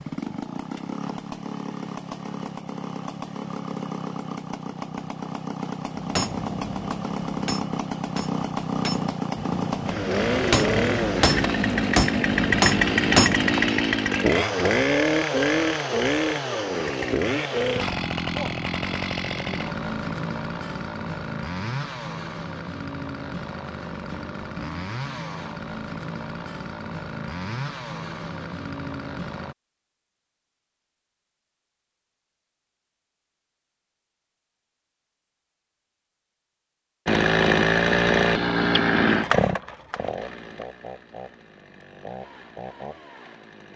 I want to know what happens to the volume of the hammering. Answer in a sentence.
The loudness of the hammering goes up.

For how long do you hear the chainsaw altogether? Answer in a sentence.
The chainsaw can be heard for 36 seconds in total.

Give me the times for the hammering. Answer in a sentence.
You can hear the hammering from 6.0 to 13.8 s.